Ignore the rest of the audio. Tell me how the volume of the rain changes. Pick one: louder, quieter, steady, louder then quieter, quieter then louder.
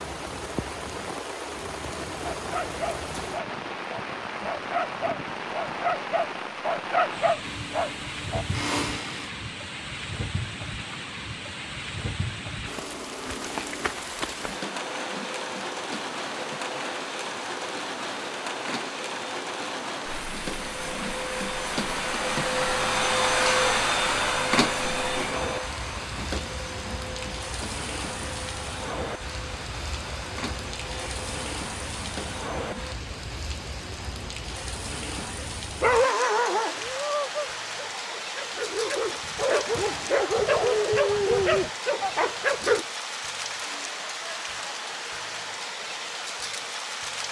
steady.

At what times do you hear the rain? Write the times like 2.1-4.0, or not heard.
0.0-47.2.